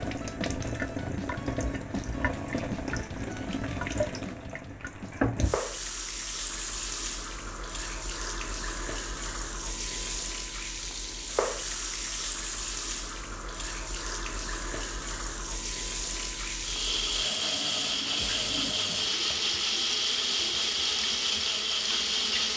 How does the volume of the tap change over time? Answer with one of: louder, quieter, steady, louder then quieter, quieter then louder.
steady.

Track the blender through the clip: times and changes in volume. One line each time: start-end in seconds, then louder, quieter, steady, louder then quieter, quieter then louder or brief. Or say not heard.
16.6-22.5 steady.